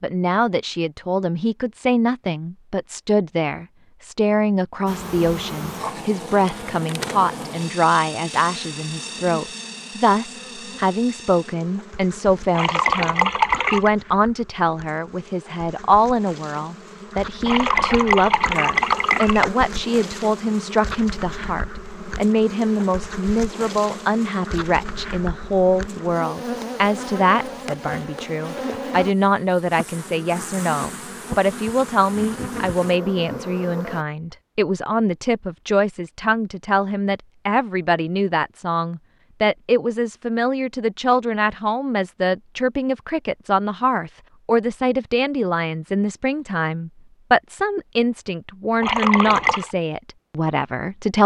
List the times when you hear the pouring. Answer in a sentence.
You can hear the pouring from 12.5 to 13.9 s, from 17.4 to 19.4 s and from 48.8 to 49.8 s.